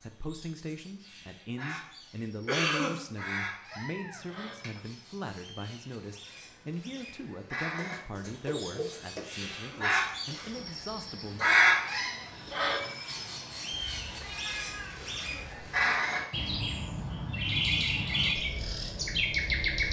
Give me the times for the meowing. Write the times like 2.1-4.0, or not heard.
3.7-4.8, 7.8-9.5, 13.7-15.9.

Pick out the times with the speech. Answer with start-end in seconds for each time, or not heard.
0.0-11.4.